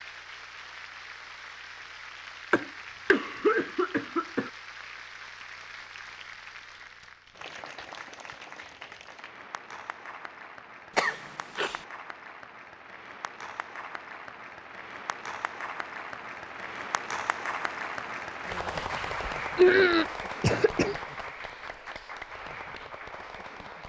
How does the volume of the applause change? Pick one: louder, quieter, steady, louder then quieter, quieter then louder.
louder.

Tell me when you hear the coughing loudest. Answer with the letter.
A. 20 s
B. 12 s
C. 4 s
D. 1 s
A.